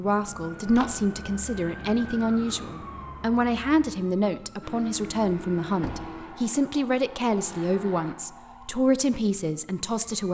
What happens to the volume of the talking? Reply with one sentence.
The volume of the talking stays about the same.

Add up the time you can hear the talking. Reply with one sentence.
The talking can be heard for 10 seconds in total.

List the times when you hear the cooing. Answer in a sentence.
The cooing can't be heard in this clip.